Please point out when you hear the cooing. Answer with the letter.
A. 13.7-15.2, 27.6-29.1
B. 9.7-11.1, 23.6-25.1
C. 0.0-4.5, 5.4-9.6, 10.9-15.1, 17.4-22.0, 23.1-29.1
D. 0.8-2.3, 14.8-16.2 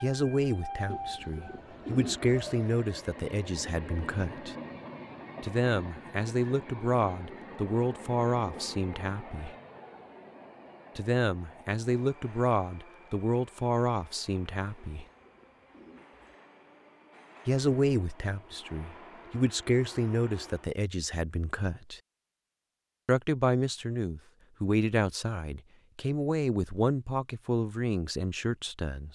D.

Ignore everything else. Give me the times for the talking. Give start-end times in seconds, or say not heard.
0.0-4.5, 5.4-9.6, 10.9-15.1, 17.4-22.0, 23.1-29.1.